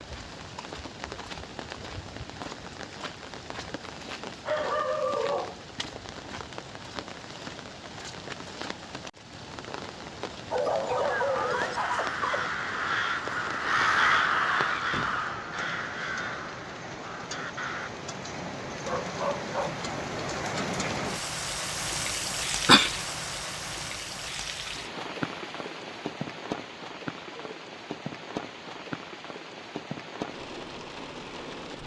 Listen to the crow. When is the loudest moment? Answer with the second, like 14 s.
14 s.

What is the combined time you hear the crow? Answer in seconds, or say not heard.
7 s.